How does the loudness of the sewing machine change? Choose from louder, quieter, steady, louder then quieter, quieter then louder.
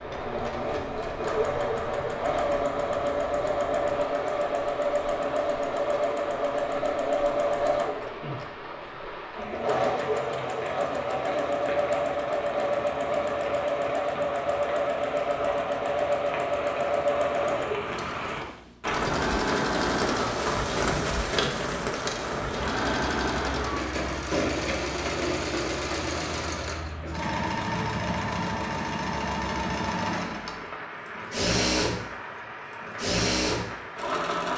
steady.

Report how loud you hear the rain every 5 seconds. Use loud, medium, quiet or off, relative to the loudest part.
medium, medium, medium, loud, loud, medium, medium.